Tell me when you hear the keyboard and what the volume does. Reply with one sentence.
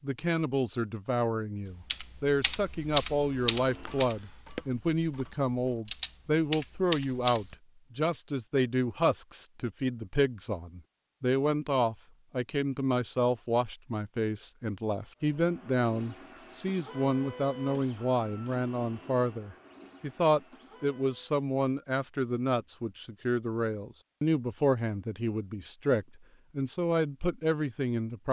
You can hear the keyboard from 1.9 to 7.5 s, getting quieter then louder.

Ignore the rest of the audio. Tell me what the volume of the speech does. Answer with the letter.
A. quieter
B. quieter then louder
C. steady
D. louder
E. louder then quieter
C.